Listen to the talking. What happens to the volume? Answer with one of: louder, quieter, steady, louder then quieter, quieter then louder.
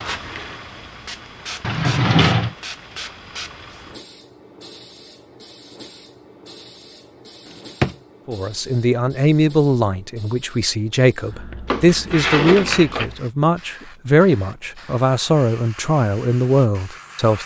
steady.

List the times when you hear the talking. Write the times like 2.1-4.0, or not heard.
8.2-17.4.